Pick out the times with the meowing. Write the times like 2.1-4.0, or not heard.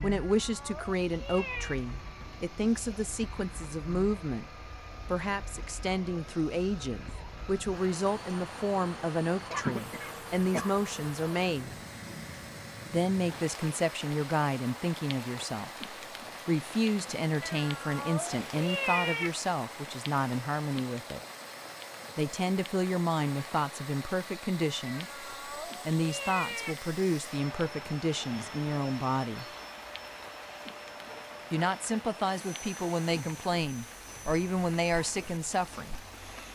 0.0-1.8, 17.4-19.3, 24.9-26.8.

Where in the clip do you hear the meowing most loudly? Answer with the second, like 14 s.
19 s.